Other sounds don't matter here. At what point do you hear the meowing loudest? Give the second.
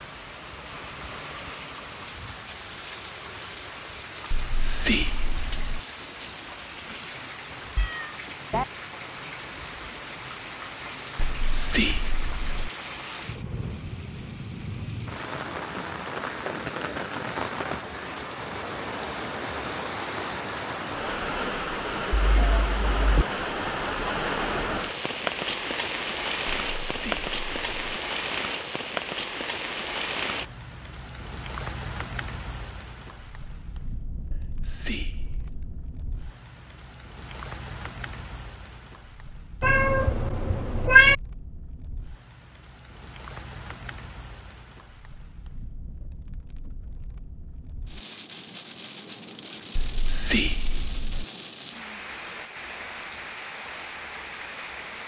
41 s.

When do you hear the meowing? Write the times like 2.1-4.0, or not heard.
7.8-8.7, 22.1-23.2, 39.6-41.1.